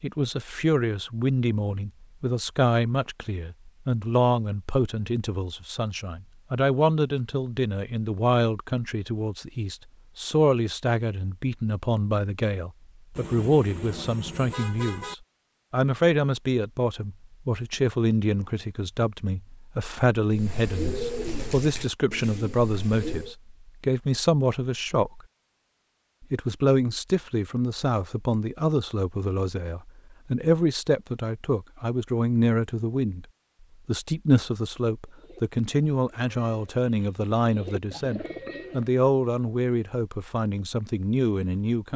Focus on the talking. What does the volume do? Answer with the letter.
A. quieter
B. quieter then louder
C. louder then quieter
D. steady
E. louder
D.